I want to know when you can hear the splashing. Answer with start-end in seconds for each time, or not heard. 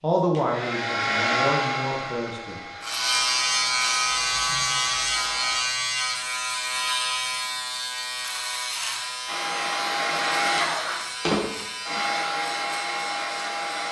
not heard.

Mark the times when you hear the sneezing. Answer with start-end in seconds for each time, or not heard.
not heard.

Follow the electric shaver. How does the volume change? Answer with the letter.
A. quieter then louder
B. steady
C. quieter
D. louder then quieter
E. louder
C.